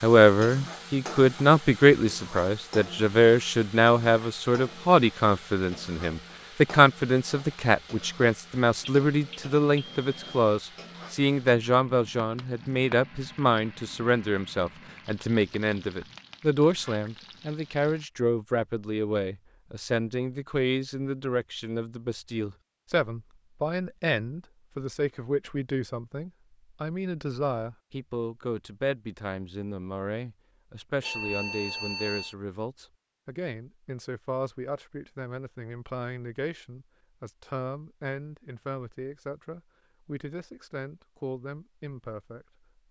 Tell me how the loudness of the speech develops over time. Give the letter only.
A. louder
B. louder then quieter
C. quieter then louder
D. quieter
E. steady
D.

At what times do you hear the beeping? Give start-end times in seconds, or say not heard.
8.8-10.5, 31.0-32.4.